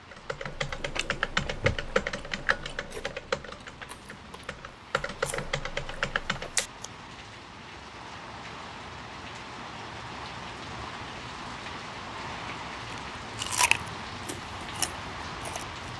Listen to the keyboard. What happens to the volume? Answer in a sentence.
The loudness of the keyboard goes down, then up.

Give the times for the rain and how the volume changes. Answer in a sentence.
You can hear the rain from 0.0 to 15.9 s, getting louder.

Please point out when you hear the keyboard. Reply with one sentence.
You can hear the keyboard from 0.1 to 6.7 s.